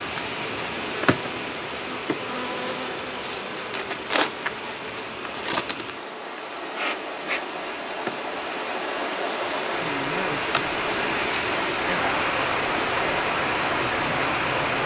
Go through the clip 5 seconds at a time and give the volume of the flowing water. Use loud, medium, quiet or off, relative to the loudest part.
medium, medium, loud.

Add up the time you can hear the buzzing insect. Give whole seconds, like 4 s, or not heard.
15 s.